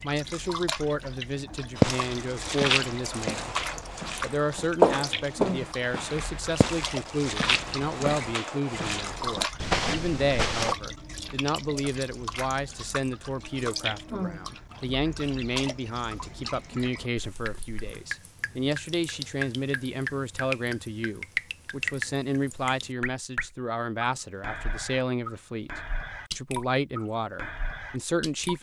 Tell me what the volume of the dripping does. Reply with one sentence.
The loudness of the dripping stays about the same.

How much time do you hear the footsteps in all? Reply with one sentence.
The footsteps can be heard for 9 seconds in total.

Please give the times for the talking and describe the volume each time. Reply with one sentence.
You can hear the talking from 0.0 to 28.5 s, at a steady volume.